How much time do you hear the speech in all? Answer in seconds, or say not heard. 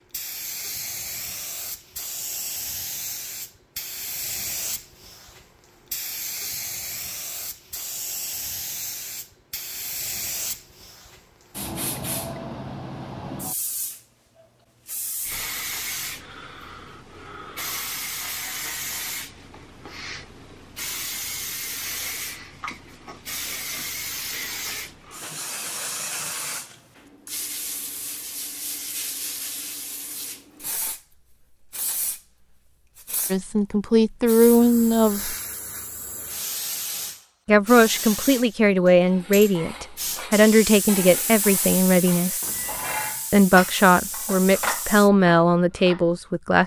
10 s.